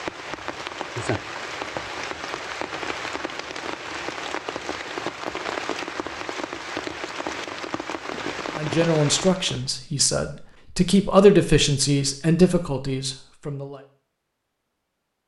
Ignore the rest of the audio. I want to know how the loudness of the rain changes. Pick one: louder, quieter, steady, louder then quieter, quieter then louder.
steady.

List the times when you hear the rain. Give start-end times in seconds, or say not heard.
0.0-9.7.